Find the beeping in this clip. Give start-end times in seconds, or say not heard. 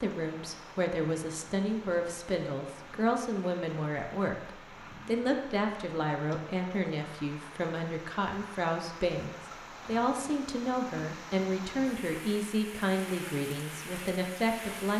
not heard.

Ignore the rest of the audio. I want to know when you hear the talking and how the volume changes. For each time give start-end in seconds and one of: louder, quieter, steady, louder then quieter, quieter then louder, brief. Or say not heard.
0.0-14.9 steady.